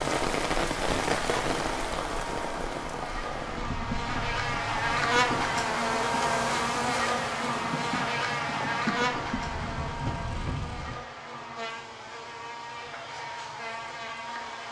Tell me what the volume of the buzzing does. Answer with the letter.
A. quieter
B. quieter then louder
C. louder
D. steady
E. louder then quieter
E.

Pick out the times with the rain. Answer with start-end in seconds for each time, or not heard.
0.0-11.1.